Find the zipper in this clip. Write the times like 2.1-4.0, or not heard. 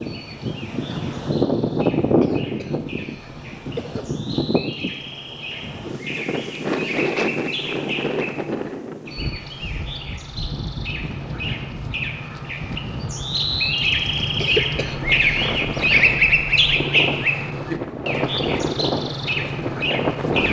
not heard.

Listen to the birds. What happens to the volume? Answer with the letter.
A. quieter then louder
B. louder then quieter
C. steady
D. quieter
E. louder
E.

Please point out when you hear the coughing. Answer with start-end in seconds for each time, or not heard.
2.2-4.0, 14.4-15.7.